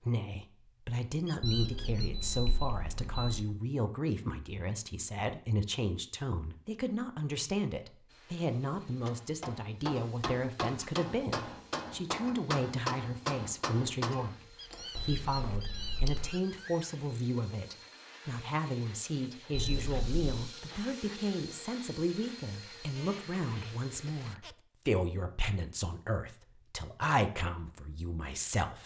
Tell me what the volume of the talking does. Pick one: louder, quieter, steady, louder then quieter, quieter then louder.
steady.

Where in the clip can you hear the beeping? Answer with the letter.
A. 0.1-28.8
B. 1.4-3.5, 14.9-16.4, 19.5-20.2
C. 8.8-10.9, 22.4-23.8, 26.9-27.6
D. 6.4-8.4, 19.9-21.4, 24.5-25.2
B.